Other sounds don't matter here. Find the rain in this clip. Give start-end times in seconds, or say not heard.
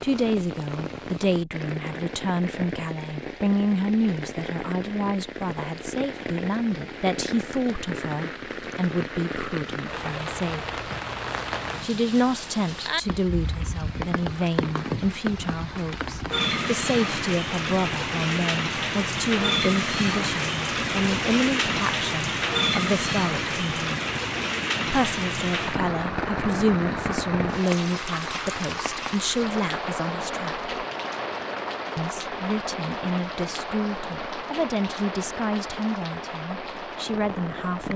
0.0-37.9.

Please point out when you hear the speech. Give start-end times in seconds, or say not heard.
0.0-10.7, 11.8-24.0, 24.9-30.6, 31.9-37.9.